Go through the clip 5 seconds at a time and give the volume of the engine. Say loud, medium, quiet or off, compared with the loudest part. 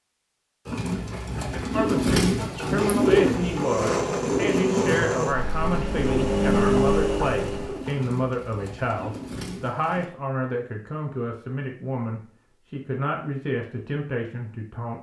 loud, loud, off.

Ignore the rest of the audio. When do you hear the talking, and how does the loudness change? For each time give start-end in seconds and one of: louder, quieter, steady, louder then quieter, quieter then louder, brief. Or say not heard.
1.5-14.9 steady.